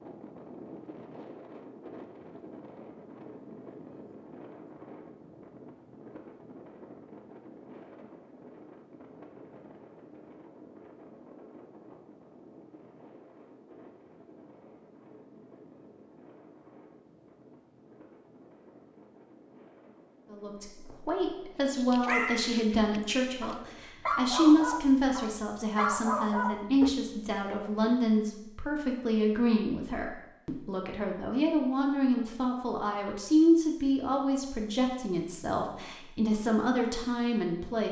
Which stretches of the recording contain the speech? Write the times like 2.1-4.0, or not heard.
20.3-37.8.